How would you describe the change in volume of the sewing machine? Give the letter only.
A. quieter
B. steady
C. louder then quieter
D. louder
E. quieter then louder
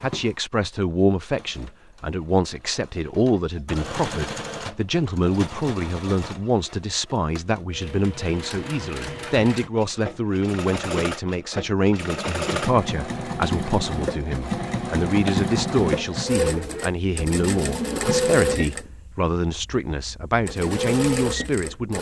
D.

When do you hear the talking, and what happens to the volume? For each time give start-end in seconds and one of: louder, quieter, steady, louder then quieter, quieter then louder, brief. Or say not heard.
0.0-21.9 steady.